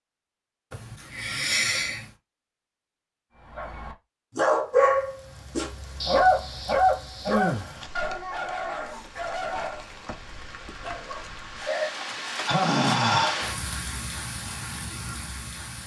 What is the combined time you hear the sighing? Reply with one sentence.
You can hear the sighing for 4 seconds altogether.